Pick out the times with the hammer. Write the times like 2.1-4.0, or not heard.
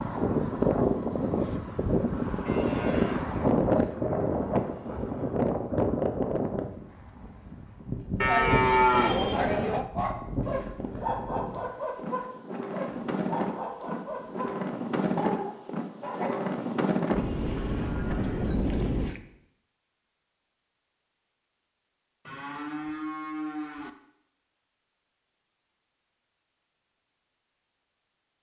not heard.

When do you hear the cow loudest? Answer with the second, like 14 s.
9 s.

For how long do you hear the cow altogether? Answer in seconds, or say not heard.
7 s.